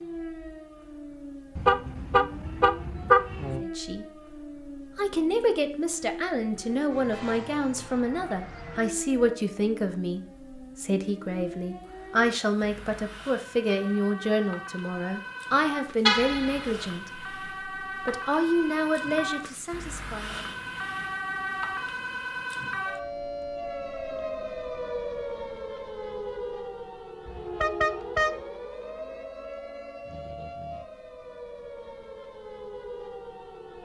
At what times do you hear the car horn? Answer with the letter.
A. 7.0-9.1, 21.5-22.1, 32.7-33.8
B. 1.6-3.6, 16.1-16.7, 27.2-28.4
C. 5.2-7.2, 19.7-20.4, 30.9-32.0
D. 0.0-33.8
B.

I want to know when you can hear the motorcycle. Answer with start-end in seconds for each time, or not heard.
not heard.